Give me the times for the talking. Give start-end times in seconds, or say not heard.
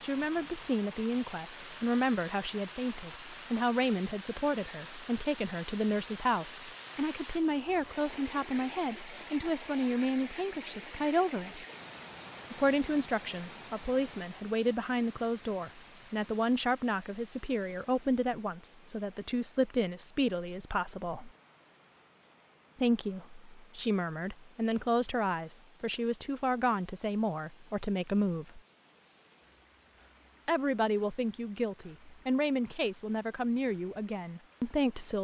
0.0-11.7, 12.5-21.3, 22.8-28.6, 30.4-35.1.